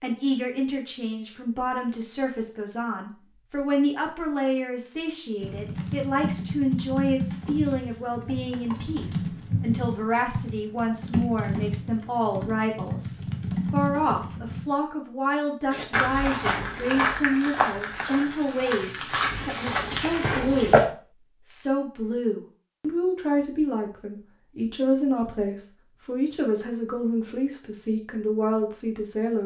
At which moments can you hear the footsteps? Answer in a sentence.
You can hear the footsteps from 15.7 to 20.9 s.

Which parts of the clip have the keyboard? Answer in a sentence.
You can hear the keyboard from 5.4 to 14.7 s.